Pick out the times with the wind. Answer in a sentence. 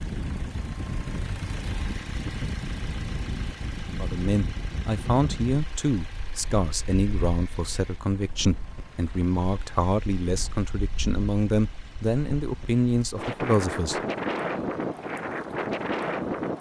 The wind can be heard from 0.0 to 16.5 s.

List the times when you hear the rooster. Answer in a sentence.
You can't hear the rooster here.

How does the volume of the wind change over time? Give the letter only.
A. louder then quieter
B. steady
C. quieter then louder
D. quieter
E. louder
C.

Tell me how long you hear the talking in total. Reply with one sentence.
The talking can be heard for 10 seconds in total.